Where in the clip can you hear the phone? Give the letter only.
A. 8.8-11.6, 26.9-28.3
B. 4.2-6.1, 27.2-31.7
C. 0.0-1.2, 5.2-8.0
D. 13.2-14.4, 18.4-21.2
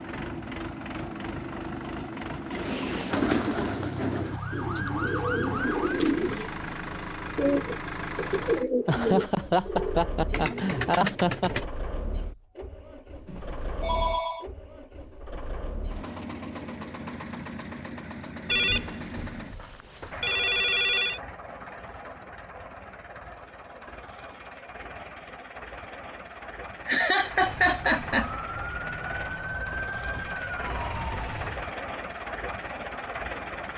D.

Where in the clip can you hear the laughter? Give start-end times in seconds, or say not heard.
8.8-11.6, 26.9-28.3.